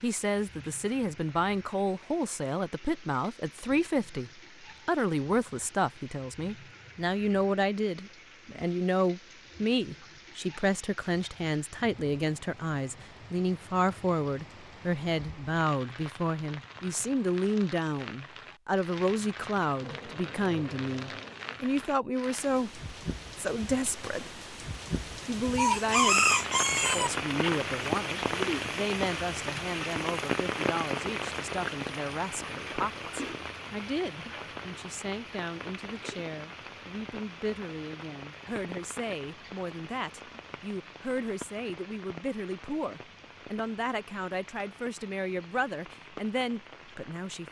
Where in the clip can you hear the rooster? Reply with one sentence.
The rooster can be heard from 25.6 to 27.1 s.